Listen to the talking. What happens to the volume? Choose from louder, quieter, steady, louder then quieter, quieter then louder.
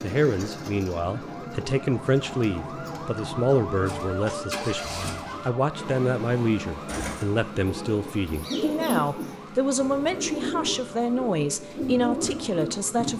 steady.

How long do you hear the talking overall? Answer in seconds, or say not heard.
13 s.